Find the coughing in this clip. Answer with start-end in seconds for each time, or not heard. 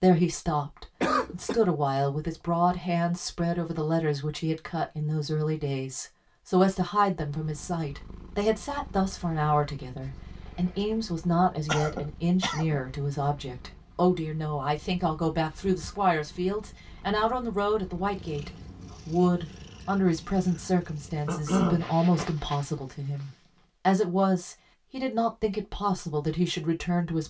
1.0-1.6, 11.7-12.8, 21.2-21.9.